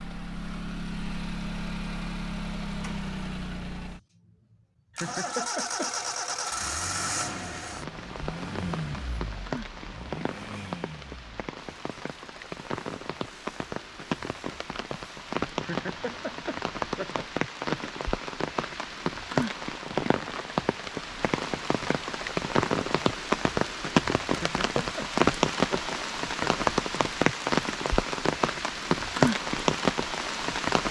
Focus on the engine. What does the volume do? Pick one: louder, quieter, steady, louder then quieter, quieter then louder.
quieter.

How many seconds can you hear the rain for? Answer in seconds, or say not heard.
23 s.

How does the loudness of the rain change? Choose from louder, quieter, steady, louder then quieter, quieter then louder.
louder.